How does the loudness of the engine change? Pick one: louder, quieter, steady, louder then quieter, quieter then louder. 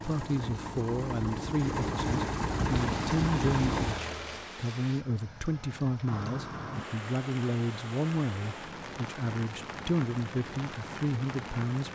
louder.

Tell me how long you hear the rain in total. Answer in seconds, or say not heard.
9 s.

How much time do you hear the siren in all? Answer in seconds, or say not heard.
not heard.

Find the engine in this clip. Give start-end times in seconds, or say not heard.
0.0-4.5.